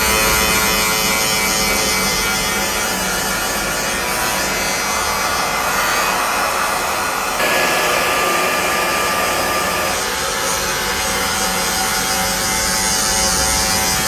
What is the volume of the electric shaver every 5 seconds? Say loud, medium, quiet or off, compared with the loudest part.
loud, medium, loud.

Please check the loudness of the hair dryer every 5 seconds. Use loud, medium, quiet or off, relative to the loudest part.
medium, loud, medium.